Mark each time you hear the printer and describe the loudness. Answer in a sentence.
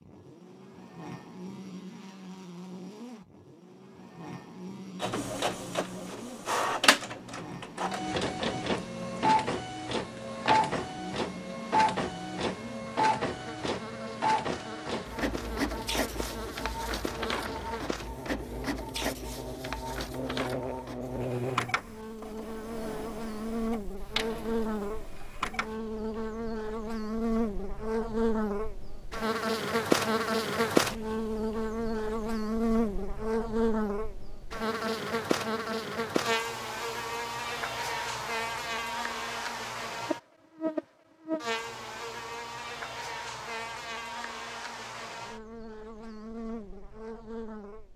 The printer can be heard from 5.0 to 25.8 s, getting quieter.